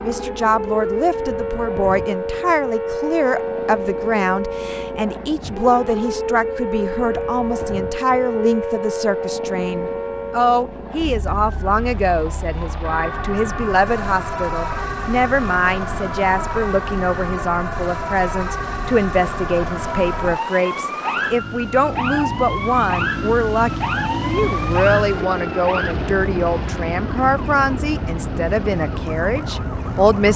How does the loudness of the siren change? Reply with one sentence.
The volume of the siren stays about the same.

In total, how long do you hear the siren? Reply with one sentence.
The siren can be heard for 30 seconds in total.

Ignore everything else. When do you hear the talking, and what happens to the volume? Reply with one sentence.
The talking can be heard from 0.0 to 30.3 s, at a steady volume.